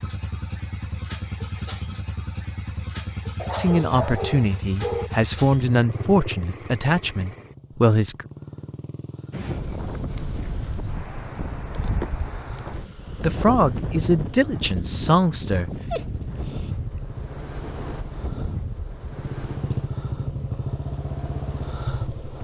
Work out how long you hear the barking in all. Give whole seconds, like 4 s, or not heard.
3 s.